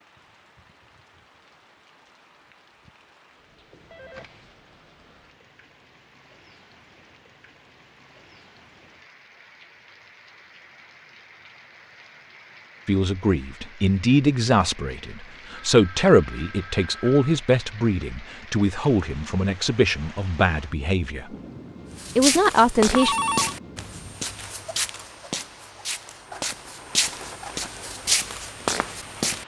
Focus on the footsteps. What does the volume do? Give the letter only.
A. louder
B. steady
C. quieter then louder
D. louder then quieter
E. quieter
C.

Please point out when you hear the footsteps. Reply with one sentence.
You can hear the footsteps from 21.9 to 29.4 s.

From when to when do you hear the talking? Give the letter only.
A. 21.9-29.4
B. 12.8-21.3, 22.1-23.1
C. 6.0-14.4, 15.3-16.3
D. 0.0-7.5
B.